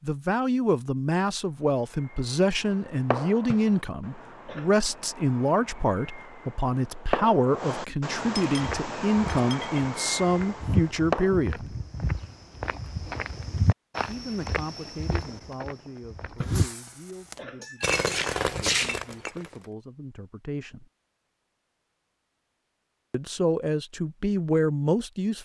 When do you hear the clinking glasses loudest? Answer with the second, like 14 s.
19 s.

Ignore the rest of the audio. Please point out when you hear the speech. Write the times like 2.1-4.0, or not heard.
0.0-11.7, 14.1-20.9, 23.1-25.4.